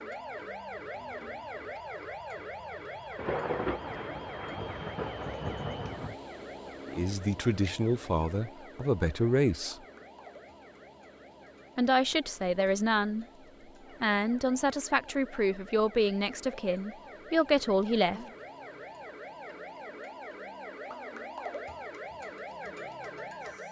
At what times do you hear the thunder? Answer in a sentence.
You can hear the thunder from 3.1 to 6.2 s.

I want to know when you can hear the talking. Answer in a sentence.
You can hear the talking from 6.8 to 9.8 s, from 11.8 to 13.2 s and from 14.0 to 18.2 s.